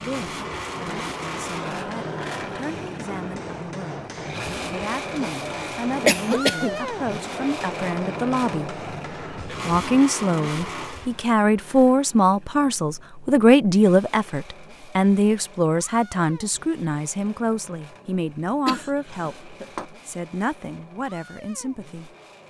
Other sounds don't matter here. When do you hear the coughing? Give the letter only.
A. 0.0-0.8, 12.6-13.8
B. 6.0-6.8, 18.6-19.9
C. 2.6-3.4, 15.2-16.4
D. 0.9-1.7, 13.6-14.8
B.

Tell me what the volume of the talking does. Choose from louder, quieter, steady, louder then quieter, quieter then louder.
louder then quieter.